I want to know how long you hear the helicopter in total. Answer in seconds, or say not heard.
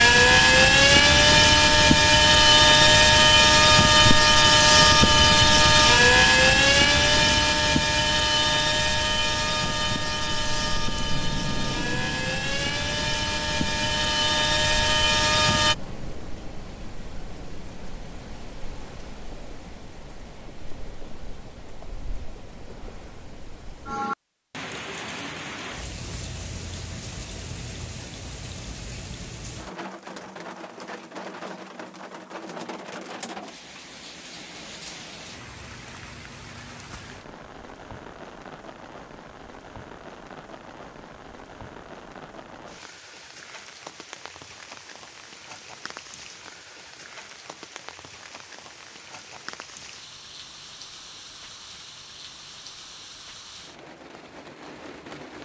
16 s.